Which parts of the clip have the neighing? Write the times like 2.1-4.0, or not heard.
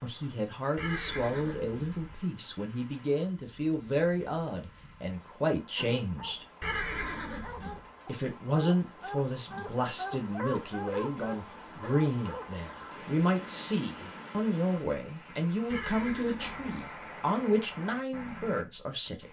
0.8-2.1, 6.6-7.8, 15.7-16.8.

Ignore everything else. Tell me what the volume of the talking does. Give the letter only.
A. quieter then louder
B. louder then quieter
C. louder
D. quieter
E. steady
E.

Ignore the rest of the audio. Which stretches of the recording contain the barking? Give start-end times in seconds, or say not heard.
5.8-12.5.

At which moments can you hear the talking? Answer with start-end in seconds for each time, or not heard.
0.0-6.5, 8.1-19.2.